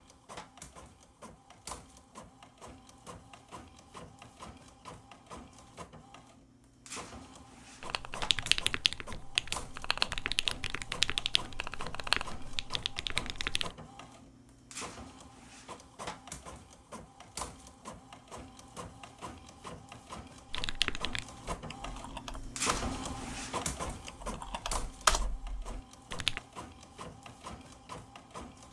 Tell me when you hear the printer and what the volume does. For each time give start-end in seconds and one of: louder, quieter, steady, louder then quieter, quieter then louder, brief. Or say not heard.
0.0-28.6 louder.